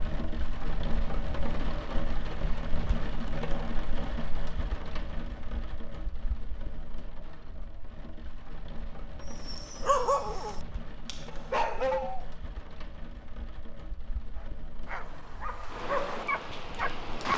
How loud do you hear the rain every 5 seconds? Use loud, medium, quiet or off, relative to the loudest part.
loud, medium, medium, loud.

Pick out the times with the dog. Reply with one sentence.
The dog can be heard from 9.3 to 12.2 s and from 14.3 to 17.3 s.